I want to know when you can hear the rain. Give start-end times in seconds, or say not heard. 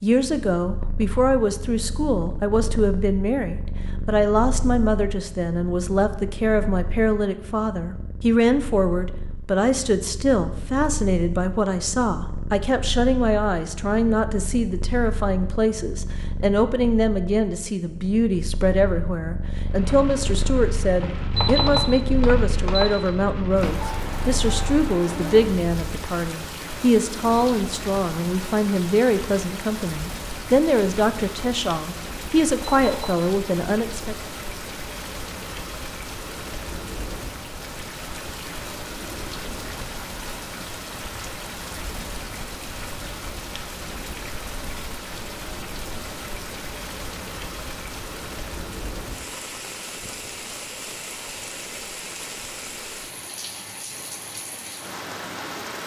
19.6-55.8.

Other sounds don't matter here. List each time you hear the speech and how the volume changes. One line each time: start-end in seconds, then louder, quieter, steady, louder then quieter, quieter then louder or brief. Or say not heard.
0.0-34.1 steady.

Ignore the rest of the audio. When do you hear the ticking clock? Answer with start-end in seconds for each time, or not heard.
not heard.